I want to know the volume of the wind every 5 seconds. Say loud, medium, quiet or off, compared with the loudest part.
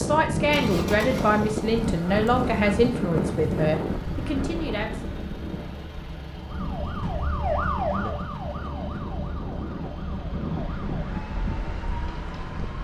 loud, medium, medium.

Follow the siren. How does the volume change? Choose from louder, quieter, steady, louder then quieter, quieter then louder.
quieter.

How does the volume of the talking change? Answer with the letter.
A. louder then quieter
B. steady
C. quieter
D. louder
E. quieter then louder
C.